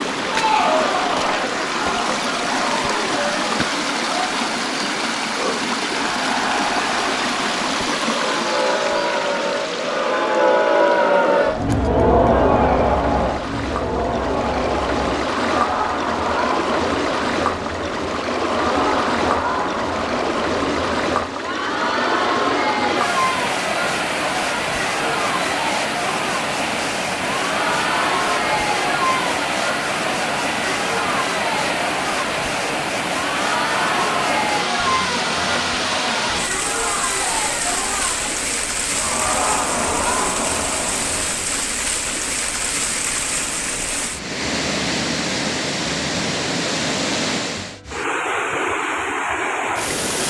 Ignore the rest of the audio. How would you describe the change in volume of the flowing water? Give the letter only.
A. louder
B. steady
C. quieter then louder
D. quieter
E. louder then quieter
B.